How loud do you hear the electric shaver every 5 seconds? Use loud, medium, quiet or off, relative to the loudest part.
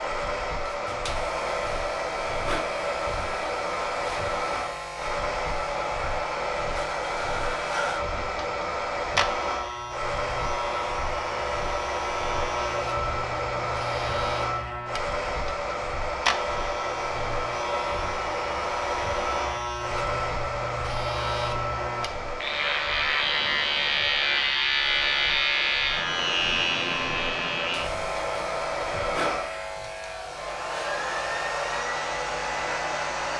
medium, medium, medium, medium, loud, loud, medium.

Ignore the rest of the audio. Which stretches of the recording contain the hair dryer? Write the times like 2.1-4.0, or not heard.
0.0-33.3.